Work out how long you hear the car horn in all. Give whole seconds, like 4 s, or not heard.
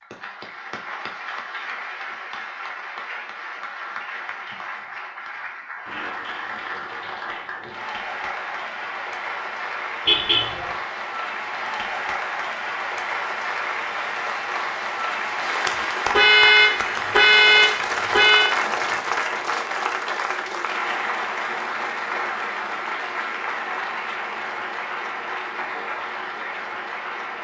3 s.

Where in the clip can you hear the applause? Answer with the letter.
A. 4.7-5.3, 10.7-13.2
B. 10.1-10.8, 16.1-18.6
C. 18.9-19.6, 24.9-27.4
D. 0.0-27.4
D.